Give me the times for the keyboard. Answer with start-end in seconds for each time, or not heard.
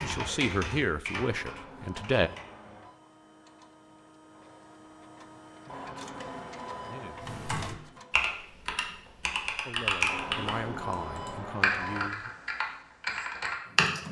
0.0-2.5, 7.2-14.0.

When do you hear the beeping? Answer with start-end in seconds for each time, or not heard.
1.2-3.0, 5.7-7.2, 10.1-12.1.